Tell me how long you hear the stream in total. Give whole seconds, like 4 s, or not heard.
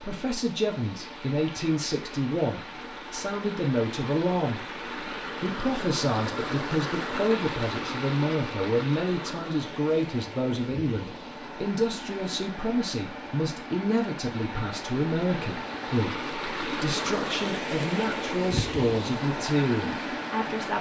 21 s.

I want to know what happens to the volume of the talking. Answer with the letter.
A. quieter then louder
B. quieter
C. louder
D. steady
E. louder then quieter
D.